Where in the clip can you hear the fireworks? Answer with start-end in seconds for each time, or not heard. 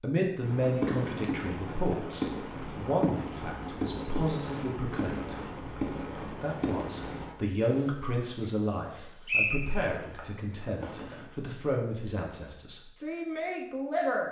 0.4-7.3.